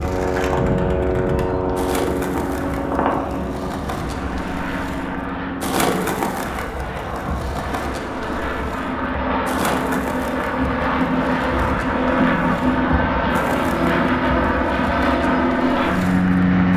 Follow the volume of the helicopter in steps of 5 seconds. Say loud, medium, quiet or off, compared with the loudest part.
medium, medium, loud, loud.